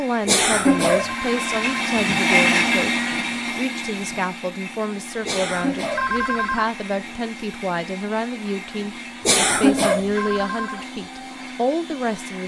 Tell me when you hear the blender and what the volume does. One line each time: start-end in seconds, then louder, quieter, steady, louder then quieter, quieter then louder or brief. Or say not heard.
0.0-12.4 quieter.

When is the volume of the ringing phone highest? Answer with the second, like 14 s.
6 s.